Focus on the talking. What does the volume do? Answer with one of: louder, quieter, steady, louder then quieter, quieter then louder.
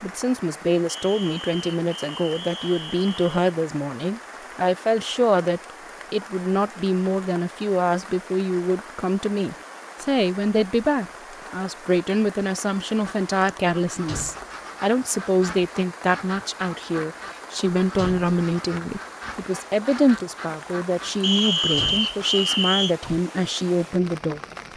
steady.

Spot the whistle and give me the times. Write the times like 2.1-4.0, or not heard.
0.8-3.3, 21.2-22.9.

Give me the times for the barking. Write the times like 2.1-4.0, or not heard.
not heard.